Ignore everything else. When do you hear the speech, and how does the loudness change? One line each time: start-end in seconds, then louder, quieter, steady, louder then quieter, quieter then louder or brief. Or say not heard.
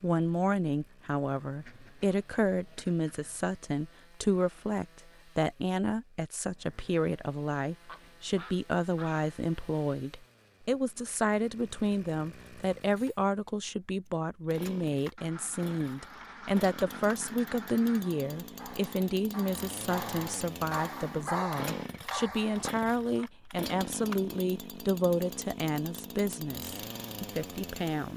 0.0-28.1 steady.